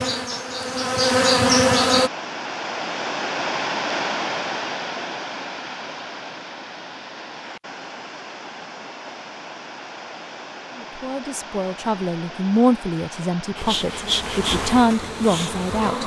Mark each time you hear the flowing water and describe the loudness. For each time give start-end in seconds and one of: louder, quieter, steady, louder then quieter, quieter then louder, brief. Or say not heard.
0.0-16.0 quieter.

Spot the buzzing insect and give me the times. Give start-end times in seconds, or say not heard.
0.0-2.1, 13.6-16.0.